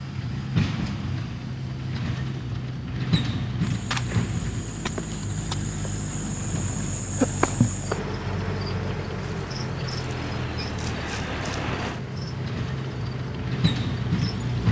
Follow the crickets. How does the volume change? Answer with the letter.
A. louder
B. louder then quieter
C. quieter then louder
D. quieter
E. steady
B.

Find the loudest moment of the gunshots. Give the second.
4 s.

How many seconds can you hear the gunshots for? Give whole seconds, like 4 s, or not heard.
2 s.